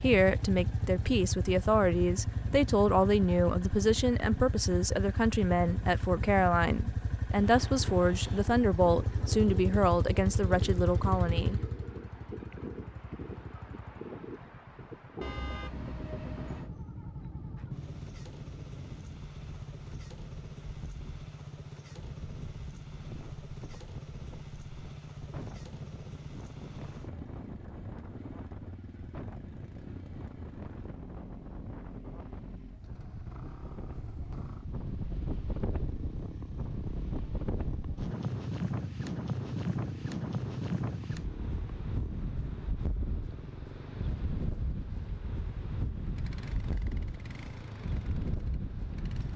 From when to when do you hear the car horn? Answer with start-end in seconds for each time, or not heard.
15.2-16.7.